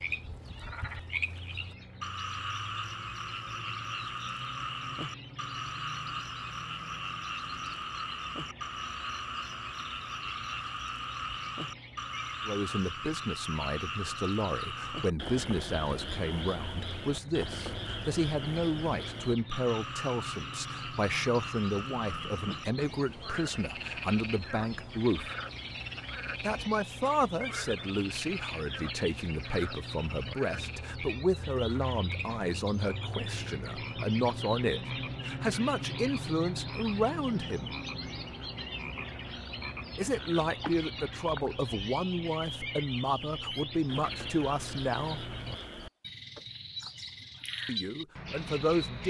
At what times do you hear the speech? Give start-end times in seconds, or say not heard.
12.4-25.3, 26.4-37.8, 40.0-45.4, 47.6-49.0.